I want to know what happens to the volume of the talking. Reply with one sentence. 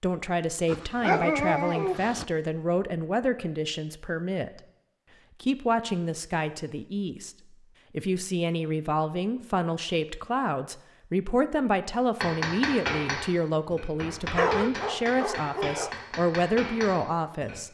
The volume of the talking stays about the same.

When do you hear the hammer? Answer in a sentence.
You can hear the hammer from 12.2 to 17.6 s.